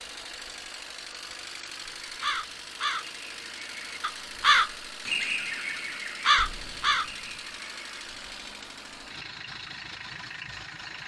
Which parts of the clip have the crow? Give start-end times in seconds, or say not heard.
2.0-8.0.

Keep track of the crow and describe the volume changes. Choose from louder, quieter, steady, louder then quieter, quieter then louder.
louder then quieter.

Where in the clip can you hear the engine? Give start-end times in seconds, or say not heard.
0.0-11.0.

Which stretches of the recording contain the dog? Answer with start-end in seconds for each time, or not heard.
not heard.